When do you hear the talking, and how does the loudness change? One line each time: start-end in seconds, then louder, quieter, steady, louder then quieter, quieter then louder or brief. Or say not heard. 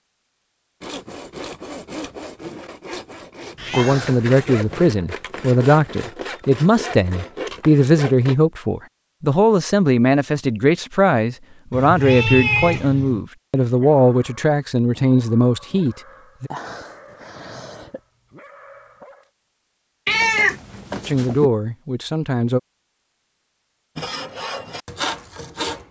3.8-16.5 steady
21.1-22.6 brief.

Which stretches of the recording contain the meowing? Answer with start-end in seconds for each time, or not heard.
3.5-5.0, 11.7-13.2, 20.1-21.5.